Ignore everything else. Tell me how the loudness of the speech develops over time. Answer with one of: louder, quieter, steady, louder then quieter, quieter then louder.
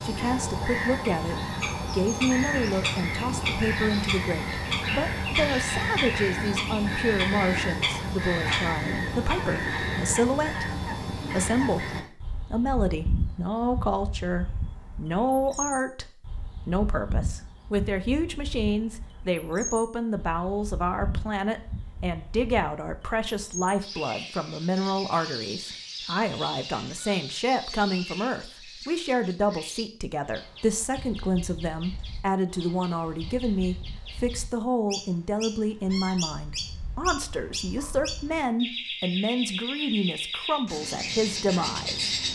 steady.